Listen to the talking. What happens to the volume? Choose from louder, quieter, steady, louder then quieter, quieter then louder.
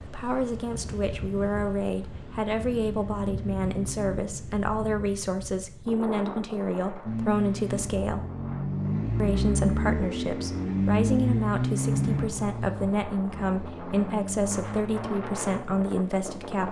steady.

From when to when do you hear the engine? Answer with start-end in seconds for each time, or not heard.
2.2-4.2, 7.0-16.6.